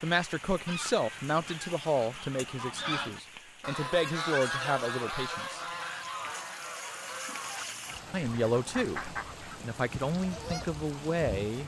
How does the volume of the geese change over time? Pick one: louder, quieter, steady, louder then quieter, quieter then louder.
louder then quieter.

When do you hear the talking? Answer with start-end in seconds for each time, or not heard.
0.0-5.7, 8.1-9.0, 9.6-11.6.